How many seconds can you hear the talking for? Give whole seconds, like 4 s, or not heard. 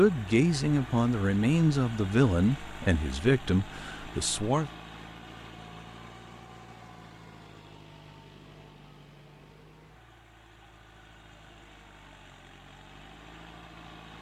5 s.